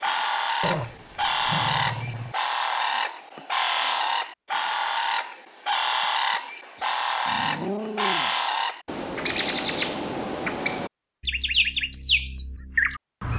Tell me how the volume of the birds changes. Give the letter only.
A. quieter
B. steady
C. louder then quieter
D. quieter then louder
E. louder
B.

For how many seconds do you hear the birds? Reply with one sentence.
The birds can be heard for 13 seconds in total.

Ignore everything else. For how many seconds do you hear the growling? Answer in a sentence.
The growling can be heard for 3 seconds in total.